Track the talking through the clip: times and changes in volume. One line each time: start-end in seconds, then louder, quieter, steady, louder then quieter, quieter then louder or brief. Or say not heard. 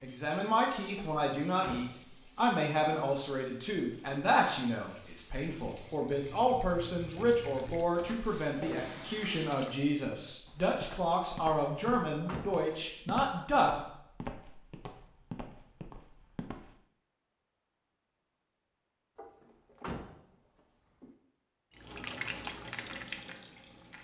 0.0-13.7 steady.